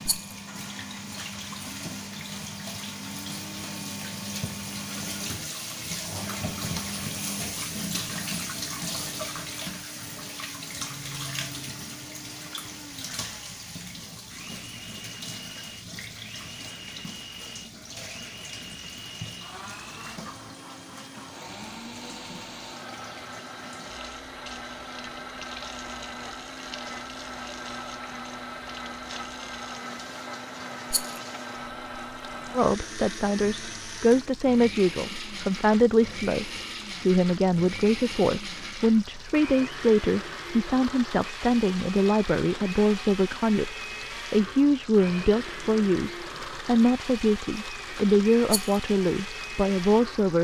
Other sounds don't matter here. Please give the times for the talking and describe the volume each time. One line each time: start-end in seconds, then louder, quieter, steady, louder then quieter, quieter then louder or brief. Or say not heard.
32.5-50.3 steady.